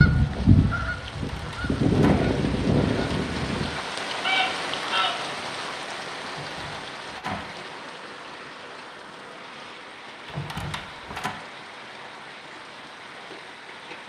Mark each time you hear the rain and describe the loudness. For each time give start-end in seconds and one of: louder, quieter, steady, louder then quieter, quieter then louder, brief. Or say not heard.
0.0-14.0 louder then quieter.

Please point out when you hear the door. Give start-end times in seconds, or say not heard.
1.1-2.2, 6.2-7.5, 10.2-11.3.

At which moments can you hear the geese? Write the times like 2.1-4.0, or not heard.
0.0-5.2.